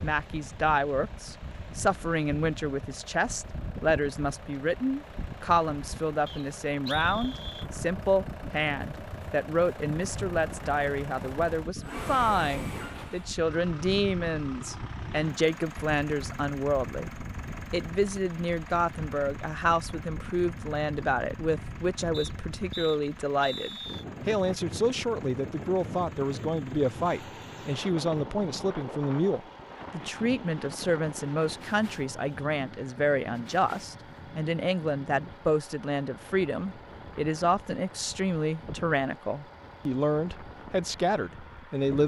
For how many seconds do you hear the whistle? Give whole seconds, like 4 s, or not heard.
3 s.